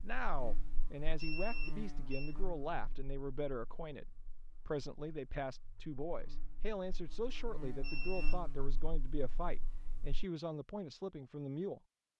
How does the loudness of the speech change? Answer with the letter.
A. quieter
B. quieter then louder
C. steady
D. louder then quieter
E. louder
C.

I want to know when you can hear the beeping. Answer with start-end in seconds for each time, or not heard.
1.1-2.4, 7.8-8.4.